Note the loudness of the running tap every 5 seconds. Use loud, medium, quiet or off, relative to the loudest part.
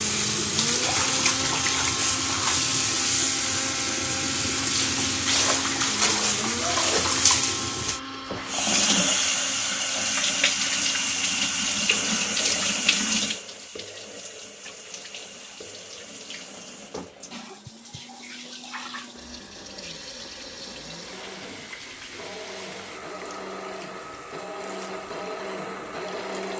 loud, loud, loud, quiet, quiet, quiet.